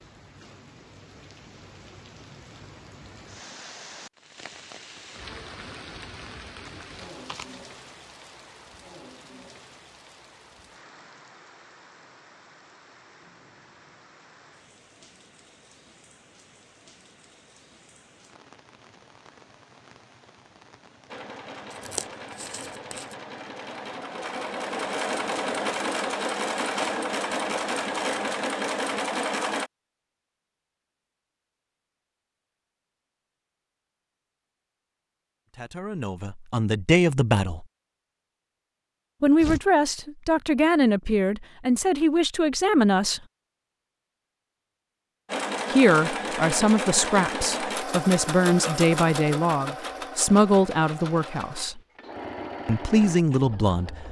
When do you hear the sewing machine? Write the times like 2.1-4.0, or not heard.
21.1-29.7, 45.2-54.0.